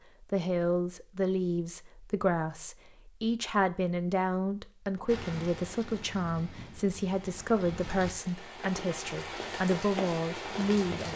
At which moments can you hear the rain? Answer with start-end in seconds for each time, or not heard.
5.0-11.1.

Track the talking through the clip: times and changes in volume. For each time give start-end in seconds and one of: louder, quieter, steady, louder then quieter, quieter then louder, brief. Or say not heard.
0.2-11.1 steady.